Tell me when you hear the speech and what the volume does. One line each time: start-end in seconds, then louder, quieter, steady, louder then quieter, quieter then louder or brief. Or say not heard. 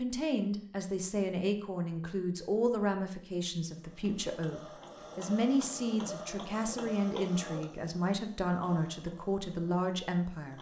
0.0-10.5 steady.